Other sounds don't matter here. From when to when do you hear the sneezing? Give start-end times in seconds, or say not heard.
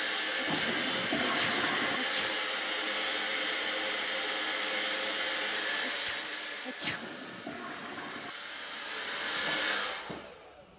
0.3-2.4, 5.8-7.0.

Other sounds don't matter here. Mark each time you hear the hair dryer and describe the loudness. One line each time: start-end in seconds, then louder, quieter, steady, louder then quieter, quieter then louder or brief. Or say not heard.
0.0-10.7 quieter then louder.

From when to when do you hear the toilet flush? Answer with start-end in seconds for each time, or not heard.
0.5-2.0, 6.8-8.3.